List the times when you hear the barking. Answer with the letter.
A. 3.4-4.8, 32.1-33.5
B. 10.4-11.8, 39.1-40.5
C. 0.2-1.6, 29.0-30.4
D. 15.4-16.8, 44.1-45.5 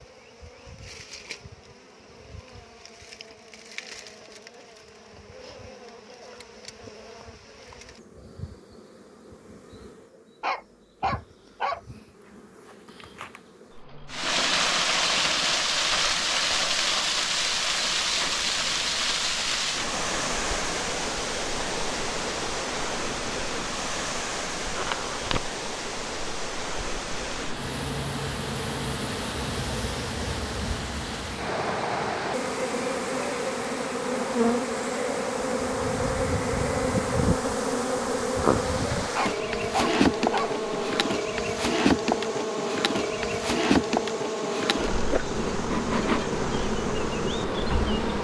B.